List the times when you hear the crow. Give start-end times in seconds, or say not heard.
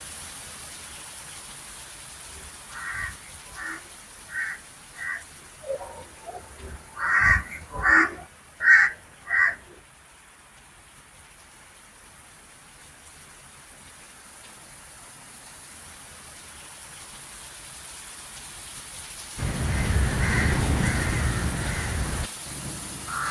2.3-9.6, 19.4-23.2.